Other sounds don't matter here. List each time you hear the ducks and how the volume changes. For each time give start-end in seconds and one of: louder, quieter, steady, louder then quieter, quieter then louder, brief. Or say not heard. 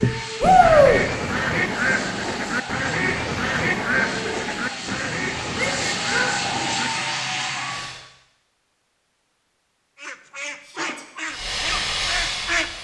0.0-6.9 quieter
10.0-12.7 brief.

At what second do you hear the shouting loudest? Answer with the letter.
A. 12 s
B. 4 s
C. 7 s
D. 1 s
D.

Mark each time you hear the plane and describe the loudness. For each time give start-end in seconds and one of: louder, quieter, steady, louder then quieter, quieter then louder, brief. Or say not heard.
0.0-8.0 louder
11.2-12.8 brief.